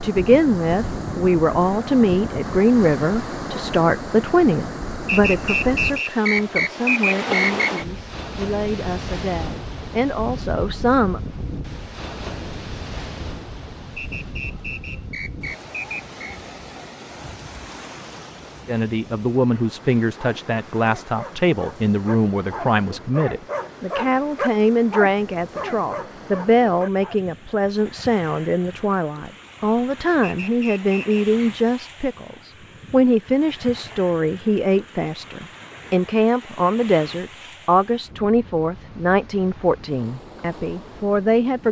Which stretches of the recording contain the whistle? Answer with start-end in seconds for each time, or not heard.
5.0-7.8, 13.9-16.4, 30.2-31.2.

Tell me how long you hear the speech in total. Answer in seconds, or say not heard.
34 s.